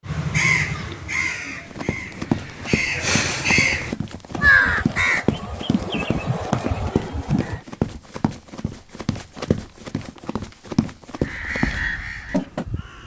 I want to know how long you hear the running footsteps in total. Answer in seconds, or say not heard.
11 s.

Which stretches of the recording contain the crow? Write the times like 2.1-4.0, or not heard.
0.1-7.6, 11.2-13.0.